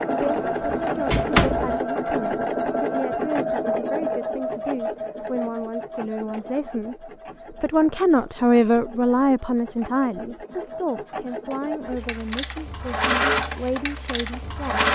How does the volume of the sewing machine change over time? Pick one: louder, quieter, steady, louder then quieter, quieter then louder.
quieter then louder.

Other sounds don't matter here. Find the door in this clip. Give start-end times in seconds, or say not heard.
0.2-1.8.